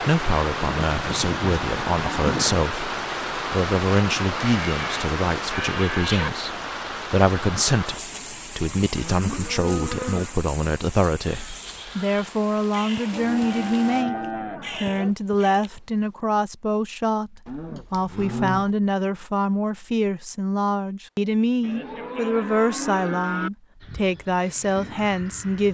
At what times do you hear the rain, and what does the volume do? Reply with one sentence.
You can hear the rain from 0.0 to 14.1 s, getting quieter.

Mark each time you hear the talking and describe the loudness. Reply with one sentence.
The talking can be heard from 0.0 to 25.6 s, at a steady volume.